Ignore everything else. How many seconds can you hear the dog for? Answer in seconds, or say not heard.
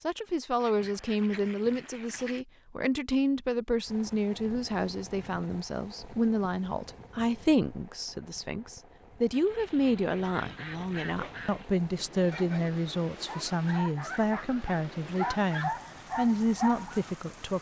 6 s.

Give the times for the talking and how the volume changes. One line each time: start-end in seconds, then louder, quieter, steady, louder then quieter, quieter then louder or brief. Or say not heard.
0.0-17.5 steady.